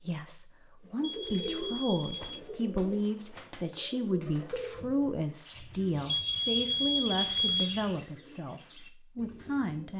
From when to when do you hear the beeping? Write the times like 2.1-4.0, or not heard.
1.0-2.4, 6.0-7.8.